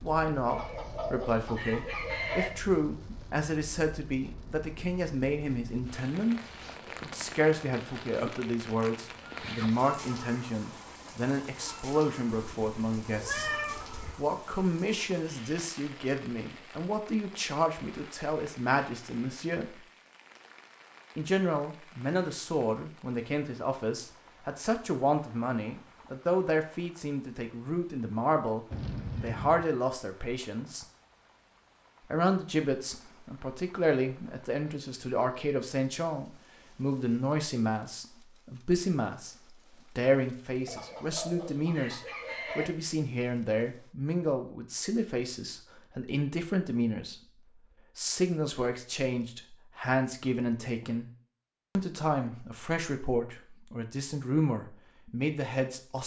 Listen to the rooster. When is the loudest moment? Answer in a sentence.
The loudest moment of the rooster is at 2 seconds.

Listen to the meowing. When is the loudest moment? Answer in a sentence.
The loudest moment of the meowing is at 13 seconds.